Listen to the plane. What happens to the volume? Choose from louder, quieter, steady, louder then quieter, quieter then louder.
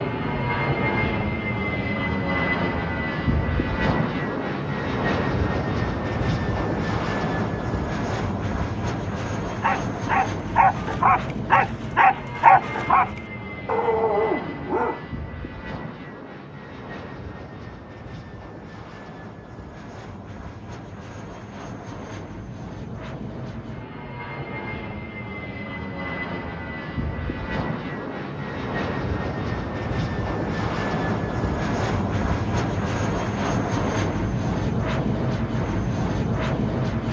quieter then louder.